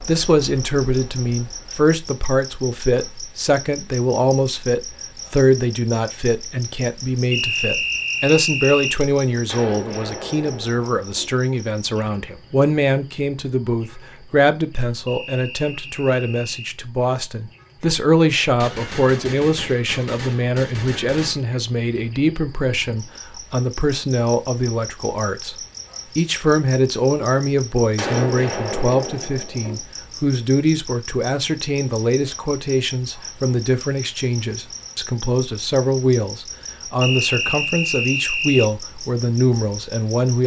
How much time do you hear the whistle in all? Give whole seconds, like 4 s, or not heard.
5 s.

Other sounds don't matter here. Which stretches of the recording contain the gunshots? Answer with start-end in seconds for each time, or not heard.
9.4-11.3, 18.6-21.4, 27.9-29.8.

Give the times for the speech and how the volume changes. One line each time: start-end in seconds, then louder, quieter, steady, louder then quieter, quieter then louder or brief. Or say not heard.
0.0-25.6 steady
26.1-40.4 steady.